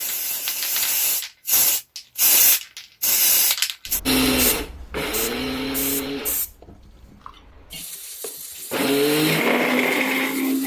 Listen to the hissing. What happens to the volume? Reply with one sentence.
The volume of the hissing goes down.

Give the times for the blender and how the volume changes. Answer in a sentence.
The blender can be heard from 4.0 to 10.6 s, getting quieter then louder.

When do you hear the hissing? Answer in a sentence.
You can hear the hissing from 0.0 to 10.6 s.